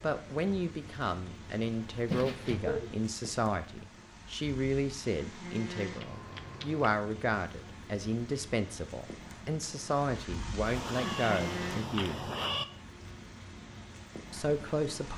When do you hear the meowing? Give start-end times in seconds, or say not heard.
2.0-3.0, 5.9-7.0, 10.7-12.7.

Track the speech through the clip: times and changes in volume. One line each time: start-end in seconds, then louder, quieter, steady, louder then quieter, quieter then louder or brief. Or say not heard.
0.0-12.3 steady
14.3-15.1 brief.